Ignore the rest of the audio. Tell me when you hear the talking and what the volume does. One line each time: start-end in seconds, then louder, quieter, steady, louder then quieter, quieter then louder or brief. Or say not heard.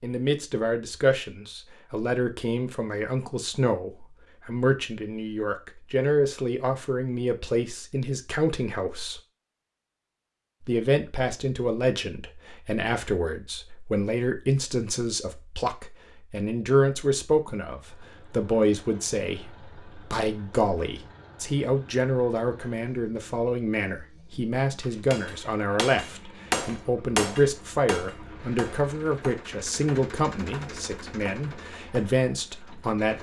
0.0-9.2 steady
10.6-33.1 steady.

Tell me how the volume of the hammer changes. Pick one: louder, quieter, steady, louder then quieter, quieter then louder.
quieter.